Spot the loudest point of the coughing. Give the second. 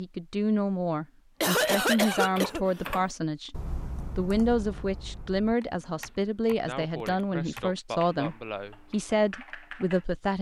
2 s.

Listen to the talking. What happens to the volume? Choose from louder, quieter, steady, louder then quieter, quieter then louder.
steady.